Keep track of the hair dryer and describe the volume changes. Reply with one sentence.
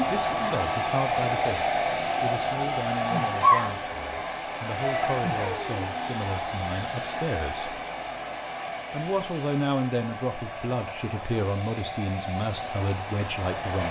The loudness of the hair dryer goes down.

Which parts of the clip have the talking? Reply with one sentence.
You can hear the talking from 0.1 to 7.8 s and from 8.9 to 13.8 s.